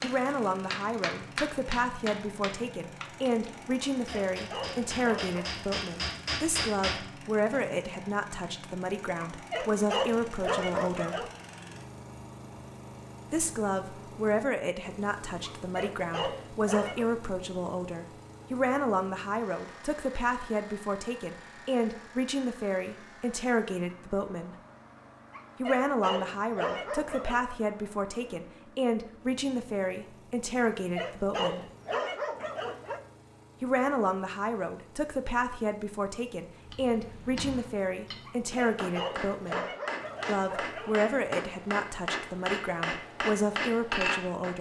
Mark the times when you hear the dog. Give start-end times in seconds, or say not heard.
3.8-5.5, 9.2-11.3, 15.4-17.1, 25.3-27.4, 30.6-33.0, 38.2-41.0.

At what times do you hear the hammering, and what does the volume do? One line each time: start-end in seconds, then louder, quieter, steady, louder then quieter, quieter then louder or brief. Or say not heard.
0.0-7.7 quieter then louder
36.6-44.5 louder.